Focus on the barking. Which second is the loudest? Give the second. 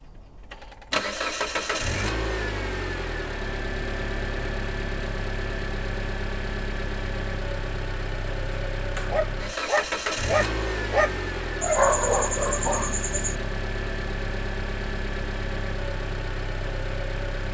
12 s.